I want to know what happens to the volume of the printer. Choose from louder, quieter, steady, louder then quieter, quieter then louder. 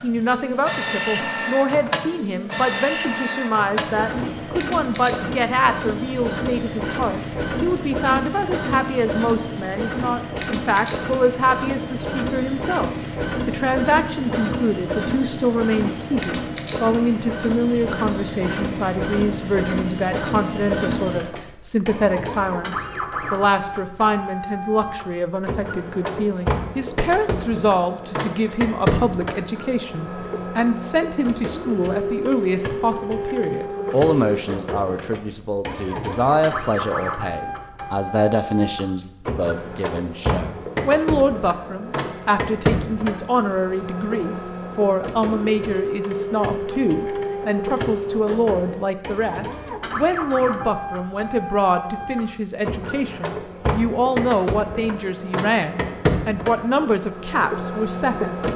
steady.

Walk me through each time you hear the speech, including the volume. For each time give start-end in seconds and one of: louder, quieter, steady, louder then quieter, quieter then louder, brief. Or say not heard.
0.0-58.4 steady.